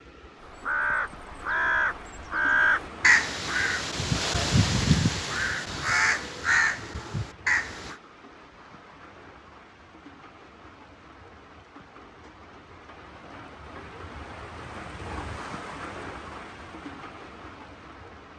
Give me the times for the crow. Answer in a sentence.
You can hear the crow from 0.5 to 8.0 s.